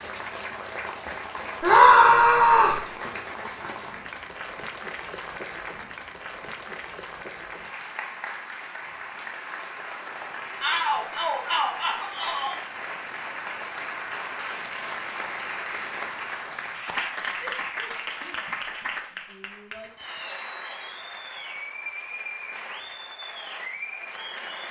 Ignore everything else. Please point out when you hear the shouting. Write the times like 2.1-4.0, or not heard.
1.6-2.8, 10.6-12.6, 17.4-18.6, 19.3-19.9.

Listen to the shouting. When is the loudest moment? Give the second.
2 s.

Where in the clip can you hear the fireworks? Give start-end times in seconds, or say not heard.
not heard.